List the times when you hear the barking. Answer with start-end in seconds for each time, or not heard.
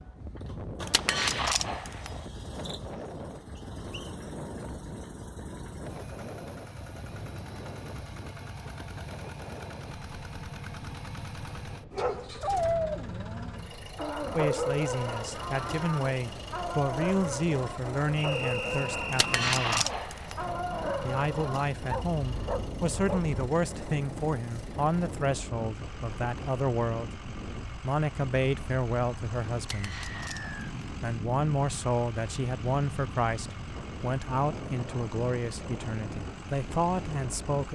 11.9-23.4.